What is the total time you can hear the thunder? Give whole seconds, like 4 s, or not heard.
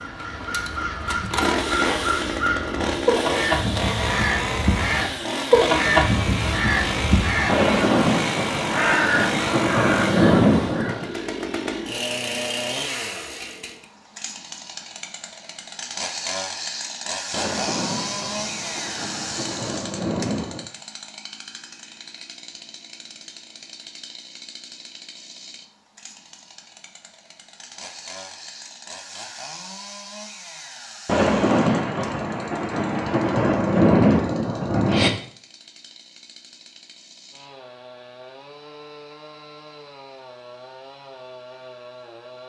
11 s.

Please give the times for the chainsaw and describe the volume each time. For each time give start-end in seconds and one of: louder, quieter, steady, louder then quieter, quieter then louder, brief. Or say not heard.
0.0-42.4 quieter.